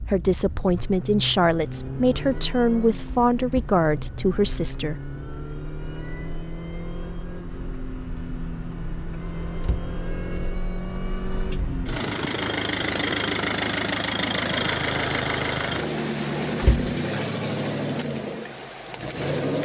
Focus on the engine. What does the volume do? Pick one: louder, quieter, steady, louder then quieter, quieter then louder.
louder.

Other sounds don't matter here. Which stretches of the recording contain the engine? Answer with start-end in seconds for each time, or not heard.
0.0-19.6.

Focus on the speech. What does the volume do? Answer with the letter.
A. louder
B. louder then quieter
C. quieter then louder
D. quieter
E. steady
E.